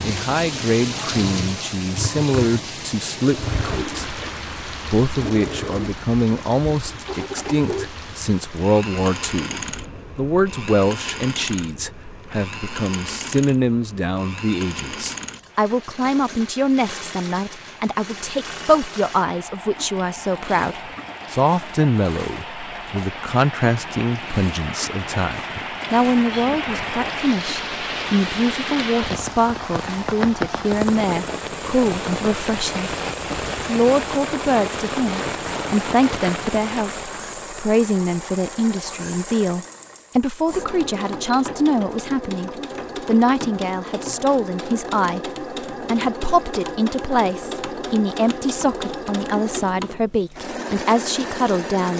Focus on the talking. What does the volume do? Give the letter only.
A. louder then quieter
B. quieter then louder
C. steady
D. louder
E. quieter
C.